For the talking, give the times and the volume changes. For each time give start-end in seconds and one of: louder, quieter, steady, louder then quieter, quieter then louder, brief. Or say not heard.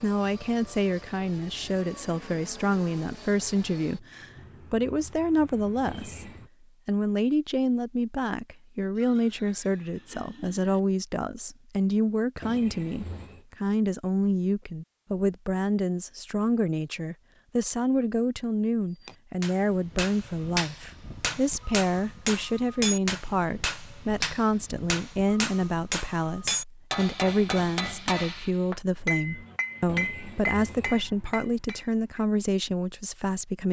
0.0-33.6 steady.